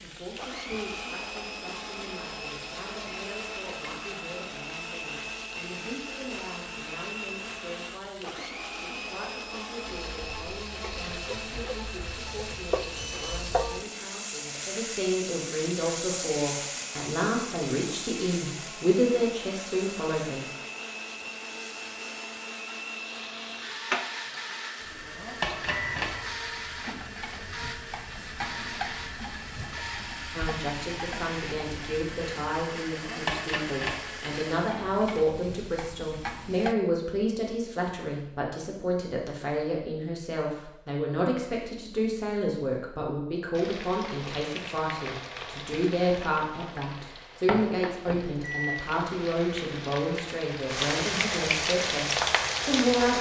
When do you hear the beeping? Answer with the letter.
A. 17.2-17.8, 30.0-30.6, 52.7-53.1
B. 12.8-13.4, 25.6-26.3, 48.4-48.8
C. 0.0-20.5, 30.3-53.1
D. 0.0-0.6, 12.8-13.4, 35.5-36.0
B.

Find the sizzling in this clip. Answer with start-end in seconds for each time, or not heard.
0.0-36.8, 43.5-53.1.